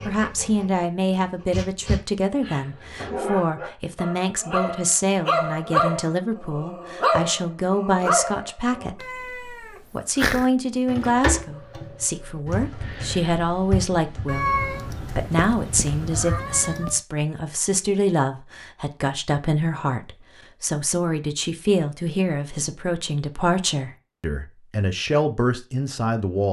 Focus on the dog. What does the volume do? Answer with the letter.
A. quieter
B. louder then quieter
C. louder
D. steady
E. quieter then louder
C.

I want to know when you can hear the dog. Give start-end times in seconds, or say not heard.
0.0-8.9.